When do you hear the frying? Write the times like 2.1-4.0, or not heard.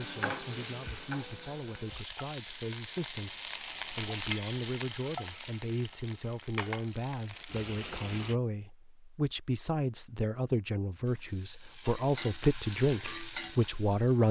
0.0-8.3, 11.1-14.2.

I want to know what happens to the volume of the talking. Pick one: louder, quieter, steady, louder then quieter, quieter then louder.
louder.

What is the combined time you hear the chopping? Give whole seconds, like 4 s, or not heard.
not heard.